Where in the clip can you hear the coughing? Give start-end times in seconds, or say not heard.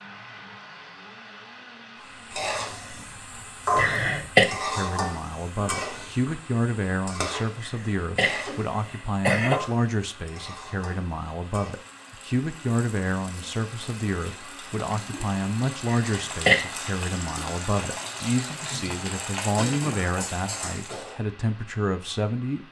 3.8-4.5, 7.6-9.6, 16.0-16.6.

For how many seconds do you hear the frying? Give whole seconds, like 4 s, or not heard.
19 s.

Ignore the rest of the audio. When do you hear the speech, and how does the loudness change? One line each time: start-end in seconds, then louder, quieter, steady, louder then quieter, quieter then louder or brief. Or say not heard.
4.5-22.6 steady.